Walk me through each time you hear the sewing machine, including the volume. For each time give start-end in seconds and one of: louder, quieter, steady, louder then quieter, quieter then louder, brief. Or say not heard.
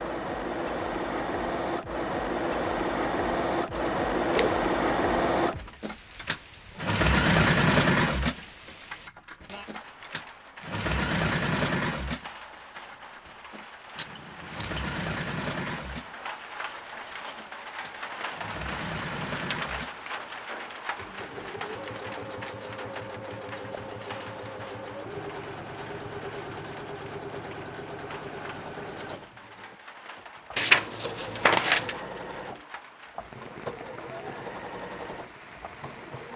0.0-36.3 quieter.